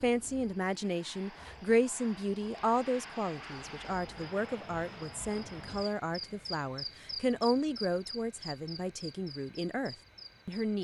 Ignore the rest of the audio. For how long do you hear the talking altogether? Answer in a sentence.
The talking can be heard for 11 seconds in total.